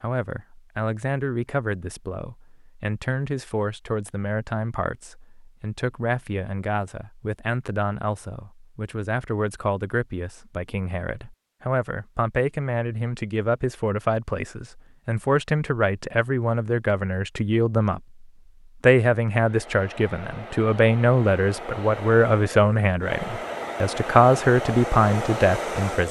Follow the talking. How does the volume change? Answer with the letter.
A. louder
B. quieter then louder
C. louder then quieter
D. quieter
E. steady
A.